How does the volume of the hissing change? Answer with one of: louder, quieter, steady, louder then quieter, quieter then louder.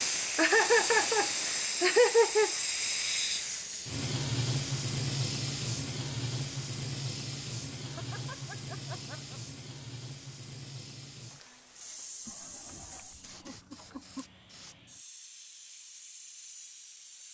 quieter.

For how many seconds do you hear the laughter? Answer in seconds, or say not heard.
6 s.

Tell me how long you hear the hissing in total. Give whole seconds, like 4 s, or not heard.
17 s.